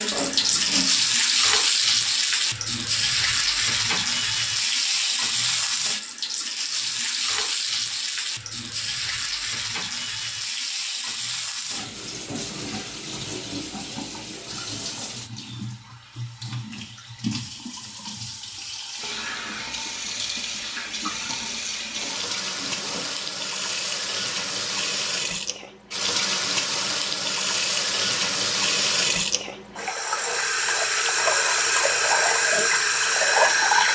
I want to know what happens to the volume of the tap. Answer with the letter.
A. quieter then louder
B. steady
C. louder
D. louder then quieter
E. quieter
A.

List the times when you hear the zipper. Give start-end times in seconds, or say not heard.
0.1-0.8, 21.9-23.1.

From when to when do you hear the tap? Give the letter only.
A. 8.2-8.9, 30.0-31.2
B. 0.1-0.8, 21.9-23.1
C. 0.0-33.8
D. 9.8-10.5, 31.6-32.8
C.